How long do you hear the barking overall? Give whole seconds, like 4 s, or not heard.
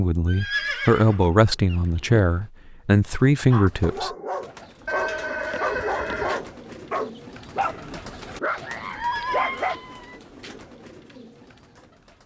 6 s.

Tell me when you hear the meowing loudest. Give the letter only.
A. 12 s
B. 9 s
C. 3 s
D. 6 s
B.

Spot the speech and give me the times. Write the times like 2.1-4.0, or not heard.
0.0-4.1.